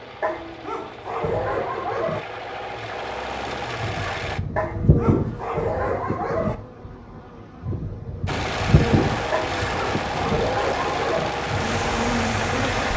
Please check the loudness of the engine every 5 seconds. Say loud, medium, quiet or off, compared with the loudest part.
medium, loud, loud.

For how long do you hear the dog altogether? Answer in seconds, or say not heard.
6 s.